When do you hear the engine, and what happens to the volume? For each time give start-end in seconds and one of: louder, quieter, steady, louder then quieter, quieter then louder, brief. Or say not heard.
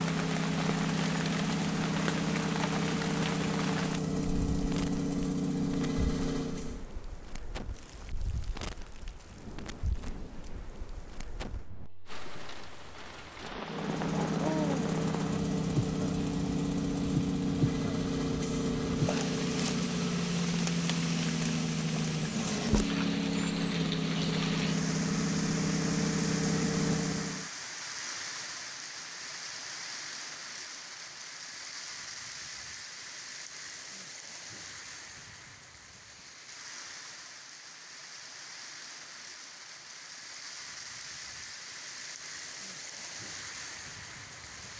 0.0-6.8 steady
13.6-27.5 steady.